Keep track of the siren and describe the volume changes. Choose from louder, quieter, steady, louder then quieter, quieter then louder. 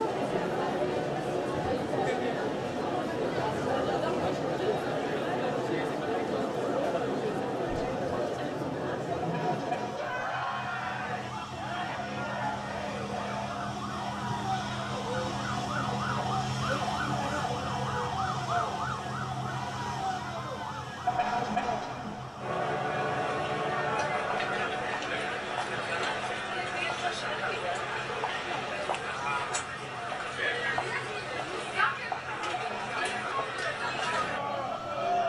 louder then quieter.